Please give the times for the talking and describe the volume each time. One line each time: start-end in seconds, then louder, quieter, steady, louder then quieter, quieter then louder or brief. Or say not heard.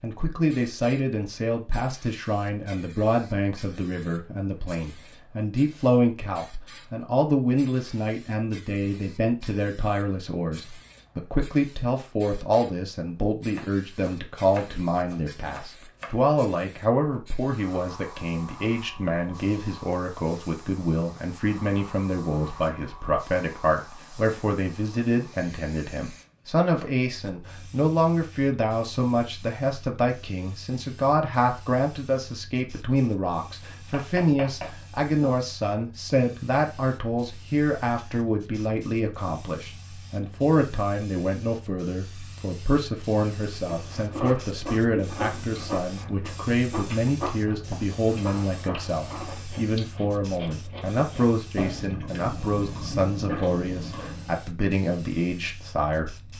0.0-56.3 steady.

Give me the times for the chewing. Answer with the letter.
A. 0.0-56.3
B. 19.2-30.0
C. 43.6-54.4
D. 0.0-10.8
C.